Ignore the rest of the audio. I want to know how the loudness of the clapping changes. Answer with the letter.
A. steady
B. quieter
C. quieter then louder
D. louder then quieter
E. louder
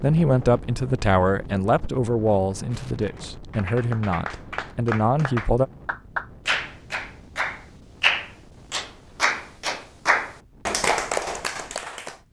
E.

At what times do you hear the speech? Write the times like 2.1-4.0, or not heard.
0.0-5.7.